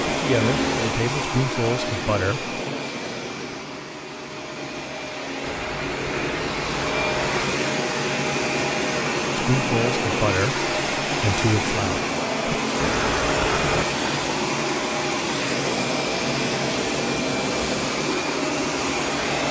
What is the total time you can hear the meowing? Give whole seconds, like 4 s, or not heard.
3 s.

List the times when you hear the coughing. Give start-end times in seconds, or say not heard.
not heard.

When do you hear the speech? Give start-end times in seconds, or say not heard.
0.1-2.5, 9.3-12.6.